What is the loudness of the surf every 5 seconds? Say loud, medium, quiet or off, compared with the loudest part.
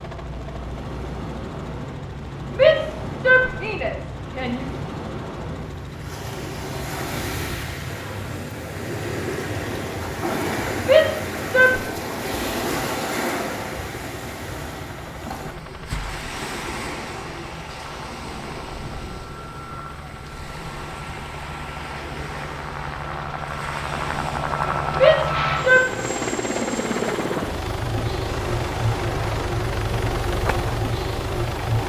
medium, loud, loud, medium, medium, medium, off.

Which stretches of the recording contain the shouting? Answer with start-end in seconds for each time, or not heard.
2.5-4.7, 10.8-11.8, 24.9-25.8.